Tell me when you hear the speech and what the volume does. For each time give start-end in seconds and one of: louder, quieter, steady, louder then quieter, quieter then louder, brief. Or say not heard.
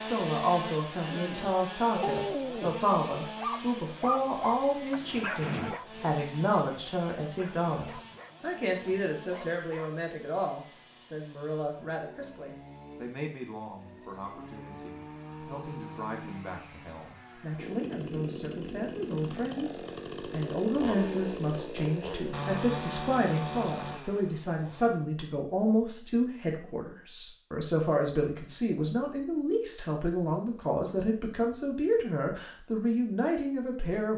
0.0-34.1 quieter then louder.